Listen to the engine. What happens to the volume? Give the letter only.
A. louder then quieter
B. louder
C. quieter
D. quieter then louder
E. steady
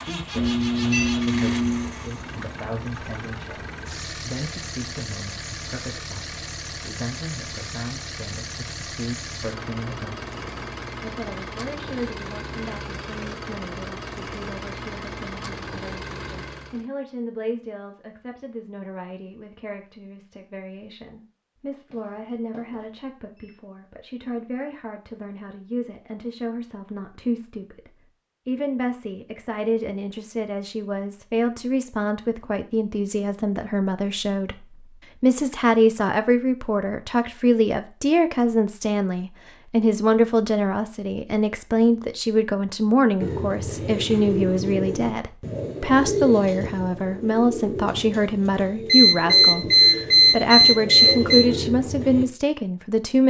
E.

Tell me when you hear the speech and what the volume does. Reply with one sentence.
The speech can be heard from 0.1 to 53.2 s, getting louder.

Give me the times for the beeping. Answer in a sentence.
The beeping can be heard from 0.3 to 1.9 s, from 21.9 to 22.9 s and from 48.9 to 51.5 s.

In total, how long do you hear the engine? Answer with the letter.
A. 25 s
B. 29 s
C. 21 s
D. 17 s
D.